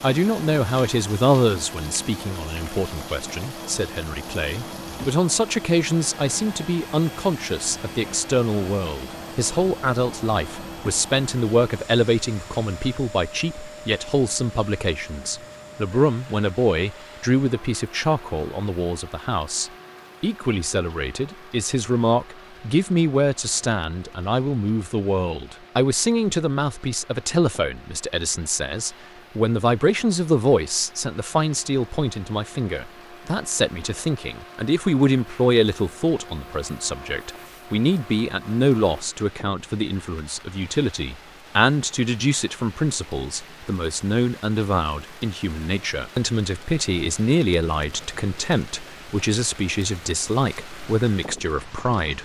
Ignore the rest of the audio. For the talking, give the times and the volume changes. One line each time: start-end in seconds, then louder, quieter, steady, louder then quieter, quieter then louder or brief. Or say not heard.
0.0-52.2 steady.